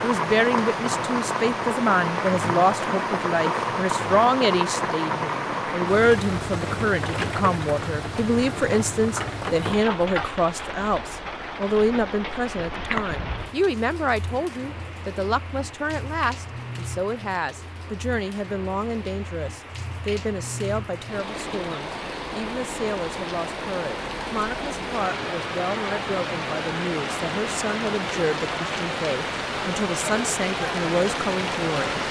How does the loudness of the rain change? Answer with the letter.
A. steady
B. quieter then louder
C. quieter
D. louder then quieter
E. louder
B.